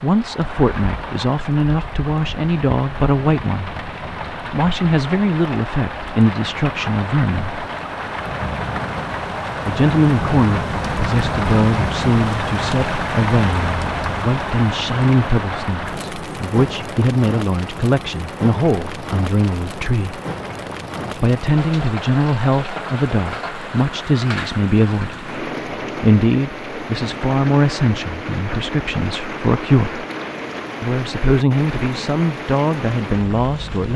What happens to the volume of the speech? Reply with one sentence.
The volume of the speech stays about the same.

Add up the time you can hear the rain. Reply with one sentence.
The rain can be heard for 34 seconds in total.